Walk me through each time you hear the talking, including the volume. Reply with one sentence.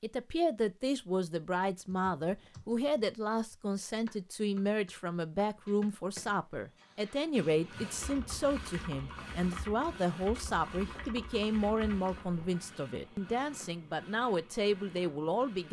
The talking can be heard from 0.0 to 15.6 s, at a steady volume.